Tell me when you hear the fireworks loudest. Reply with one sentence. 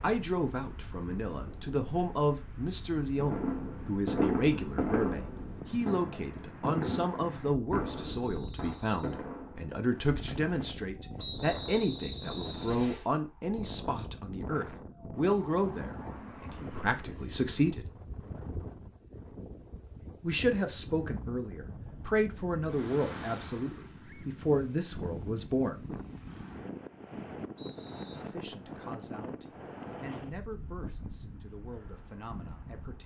The loudest moment of the fireworks is at 4 seconds.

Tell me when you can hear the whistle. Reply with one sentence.
You can hear the whistle from 8.2 to 9.2 s, from 11.2 to 13.1 s and from 27.6 to 28.2 s.